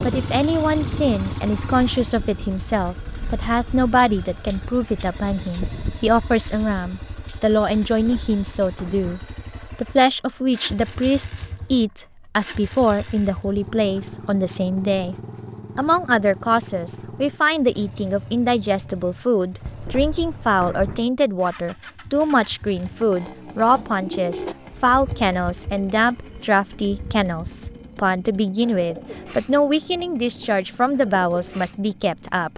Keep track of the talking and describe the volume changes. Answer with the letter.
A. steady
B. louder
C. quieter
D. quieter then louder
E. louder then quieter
A.